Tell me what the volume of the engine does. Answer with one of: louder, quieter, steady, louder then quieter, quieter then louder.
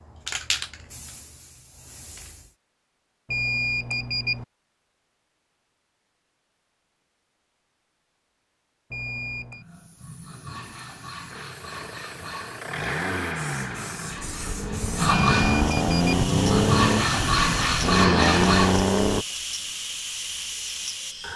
louder.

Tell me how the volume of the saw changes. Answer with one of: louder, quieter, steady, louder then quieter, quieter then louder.
louder.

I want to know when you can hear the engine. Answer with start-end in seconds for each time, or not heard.
11.3-19.2.